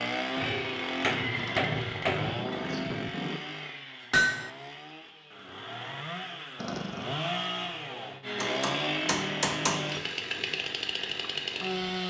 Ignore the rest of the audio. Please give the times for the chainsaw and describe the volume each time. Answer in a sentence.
You can hear the chainsaw from 0.0 to 12.0 s, getting quieter then louder.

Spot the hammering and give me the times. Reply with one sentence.
The hammering can be heard from 0.3 to 2.3 s, from 4.1 to 4.5 s and from 8.4 to 9.9 s.